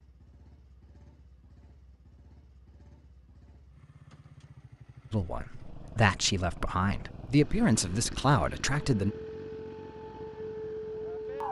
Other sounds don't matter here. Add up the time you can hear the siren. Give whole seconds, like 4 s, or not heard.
3 s.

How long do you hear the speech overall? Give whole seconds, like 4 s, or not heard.
4 s.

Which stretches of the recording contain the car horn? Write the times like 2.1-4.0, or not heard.
not heard.